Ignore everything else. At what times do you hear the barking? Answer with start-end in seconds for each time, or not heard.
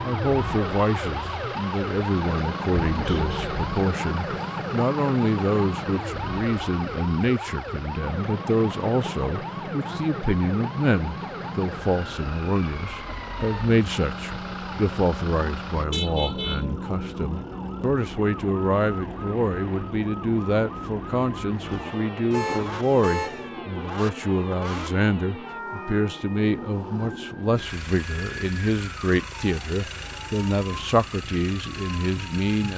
not heard.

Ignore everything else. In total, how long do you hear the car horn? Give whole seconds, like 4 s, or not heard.
3 s.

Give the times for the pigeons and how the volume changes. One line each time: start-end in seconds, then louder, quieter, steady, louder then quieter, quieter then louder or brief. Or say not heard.
not heard.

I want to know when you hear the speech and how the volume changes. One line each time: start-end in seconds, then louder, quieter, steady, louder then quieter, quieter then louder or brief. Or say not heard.
0.0-32.7 steady.